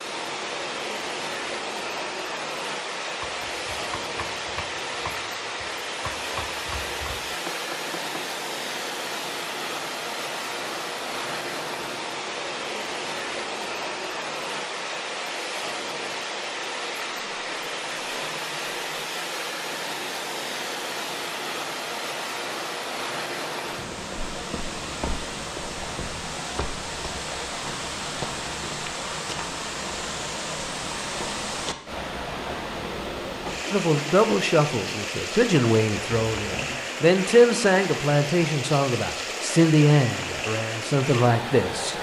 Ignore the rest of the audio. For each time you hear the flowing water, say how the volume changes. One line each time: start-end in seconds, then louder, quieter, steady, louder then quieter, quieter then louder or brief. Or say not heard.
0.0-41.9 steady.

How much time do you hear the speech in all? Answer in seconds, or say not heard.
8 s.